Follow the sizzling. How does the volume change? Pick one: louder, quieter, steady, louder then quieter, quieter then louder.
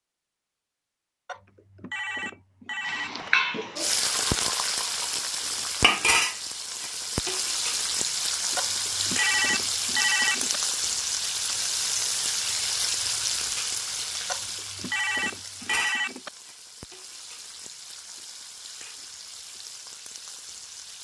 quieter.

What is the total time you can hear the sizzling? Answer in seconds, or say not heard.
18 s.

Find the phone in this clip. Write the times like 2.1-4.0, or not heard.
1.2-3.3, 8.6-10.6, 14.2-16.3.